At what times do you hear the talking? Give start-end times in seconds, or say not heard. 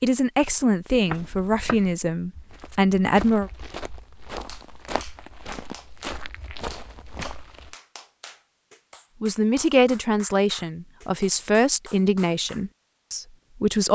0.0-3.5, 9.2-13.9.